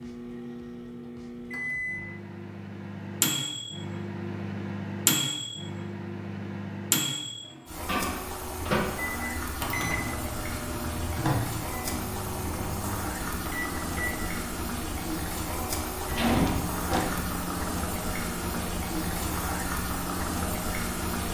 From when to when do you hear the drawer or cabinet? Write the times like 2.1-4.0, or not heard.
16.1-17.1.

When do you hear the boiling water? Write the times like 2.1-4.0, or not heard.
7.7-21.2.